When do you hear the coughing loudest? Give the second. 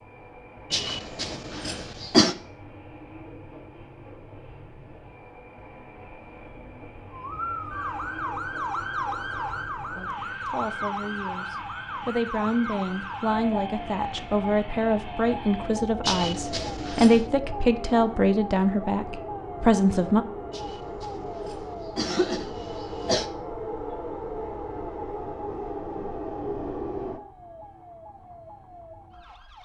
2 s.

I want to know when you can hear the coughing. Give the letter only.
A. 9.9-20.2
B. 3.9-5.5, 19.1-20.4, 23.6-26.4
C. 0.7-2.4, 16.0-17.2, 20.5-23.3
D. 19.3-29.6
C.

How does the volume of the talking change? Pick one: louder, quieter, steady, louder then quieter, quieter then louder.
louder.